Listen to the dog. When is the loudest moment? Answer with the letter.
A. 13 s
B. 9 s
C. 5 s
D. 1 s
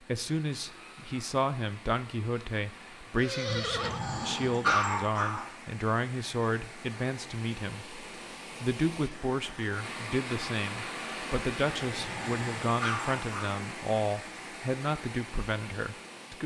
C.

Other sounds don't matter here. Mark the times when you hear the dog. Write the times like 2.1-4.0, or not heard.
3.5-5.5, 11.8-13.6.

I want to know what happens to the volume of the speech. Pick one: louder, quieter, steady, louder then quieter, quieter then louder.
steady.